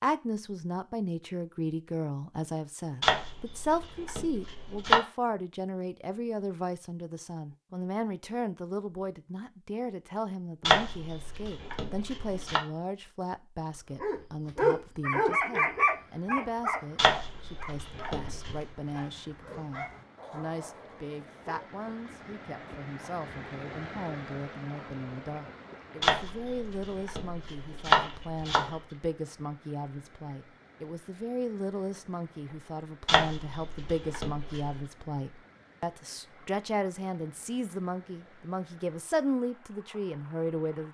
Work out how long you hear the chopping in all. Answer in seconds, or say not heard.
10 s.